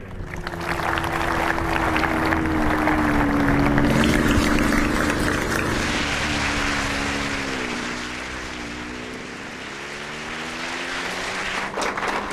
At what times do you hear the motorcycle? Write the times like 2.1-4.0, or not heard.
0.0-12.2.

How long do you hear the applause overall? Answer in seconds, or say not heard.
12 s.